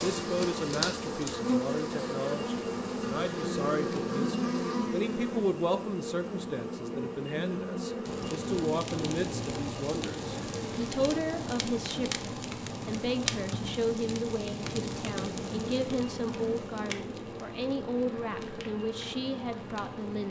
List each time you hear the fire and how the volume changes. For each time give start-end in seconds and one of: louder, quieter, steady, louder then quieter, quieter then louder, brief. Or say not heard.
8.1-20.2 quieter.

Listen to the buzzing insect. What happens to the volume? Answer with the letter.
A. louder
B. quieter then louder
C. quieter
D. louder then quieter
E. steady
C.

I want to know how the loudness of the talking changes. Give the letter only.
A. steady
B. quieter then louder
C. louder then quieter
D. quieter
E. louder
A.